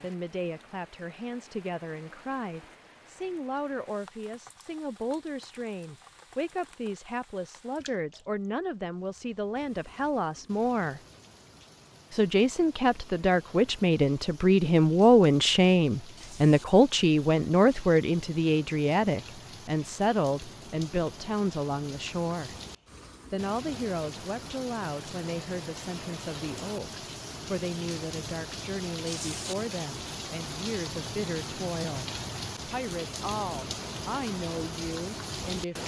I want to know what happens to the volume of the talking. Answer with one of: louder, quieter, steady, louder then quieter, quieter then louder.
louder then quieter.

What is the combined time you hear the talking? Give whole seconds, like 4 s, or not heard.
34 s.